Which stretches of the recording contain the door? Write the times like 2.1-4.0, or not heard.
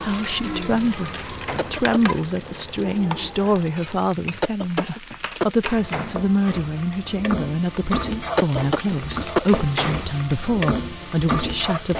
1.1-1.9, 5.6-6.3, 9.4-10.1.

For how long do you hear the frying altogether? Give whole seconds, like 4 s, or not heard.
12 s.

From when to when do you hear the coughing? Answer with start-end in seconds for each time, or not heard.
1.6-2.1, 4.4-5.7, 8.3-9.6.